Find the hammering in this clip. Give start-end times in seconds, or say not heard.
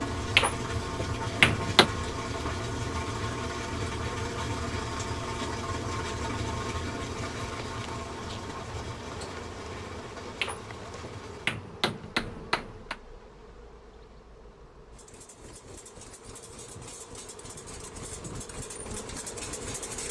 0.3-1.9, 10.4-12.9.